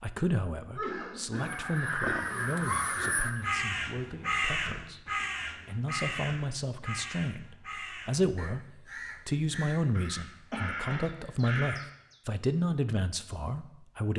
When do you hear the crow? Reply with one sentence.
You can hear the crow from 1.4 to 12.2 s.